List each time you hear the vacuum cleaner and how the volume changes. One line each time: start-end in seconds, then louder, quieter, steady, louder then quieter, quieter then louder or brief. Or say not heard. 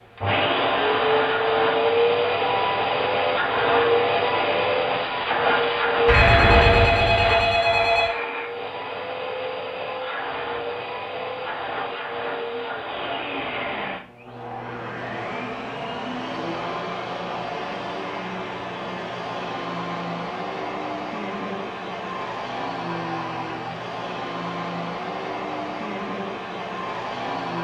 0.1-27.6 quieter.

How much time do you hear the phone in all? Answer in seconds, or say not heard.
2 s.